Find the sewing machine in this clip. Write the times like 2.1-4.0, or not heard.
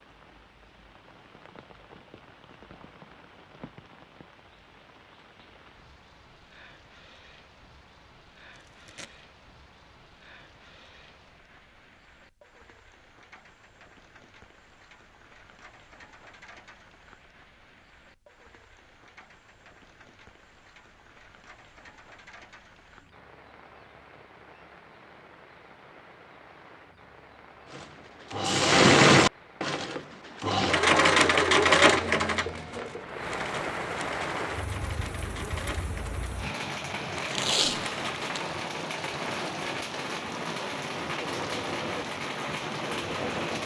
27.8-43.6.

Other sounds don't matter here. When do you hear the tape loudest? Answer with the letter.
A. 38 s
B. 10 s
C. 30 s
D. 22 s
A.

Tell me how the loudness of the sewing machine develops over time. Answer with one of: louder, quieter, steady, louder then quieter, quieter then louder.
quieter.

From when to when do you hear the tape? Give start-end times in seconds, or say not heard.
8.6-9.1, 37.2-38.4.